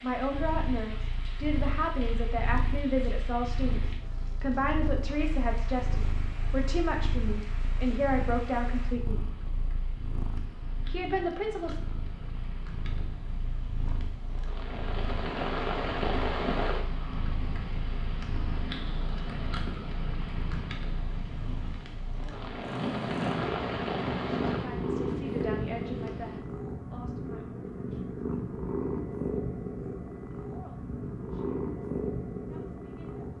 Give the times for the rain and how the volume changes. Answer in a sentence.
The rain can be heard from 0.0 to 26.4 s, getting louder.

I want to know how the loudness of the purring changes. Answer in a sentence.
The loudness of the purring goes up.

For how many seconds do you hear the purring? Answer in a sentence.
The purring can be heard for 33 seconds in total.